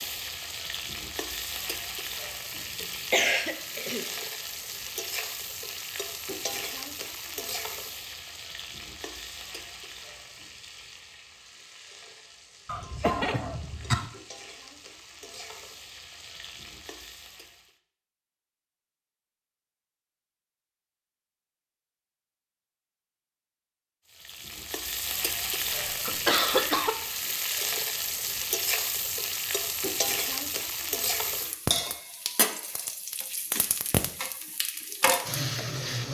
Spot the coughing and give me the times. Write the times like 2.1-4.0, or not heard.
2.8-4.0, 12.7-14.1, 25.7-26.9.